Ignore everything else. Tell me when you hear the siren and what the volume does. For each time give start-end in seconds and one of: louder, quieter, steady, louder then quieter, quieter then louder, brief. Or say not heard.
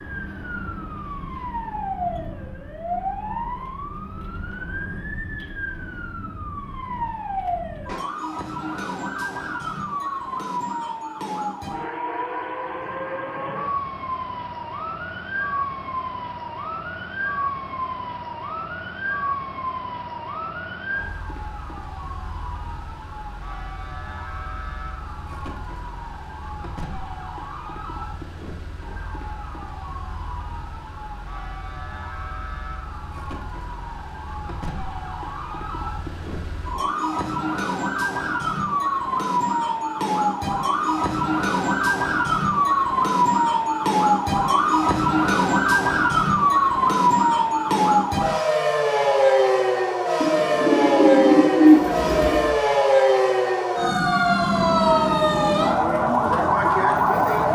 0.0-57.4 quieter then louder.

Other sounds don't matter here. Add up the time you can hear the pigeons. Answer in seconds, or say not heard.
2 s.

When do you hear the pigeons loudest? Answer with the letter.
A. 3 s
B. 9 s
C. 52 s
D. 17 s
C.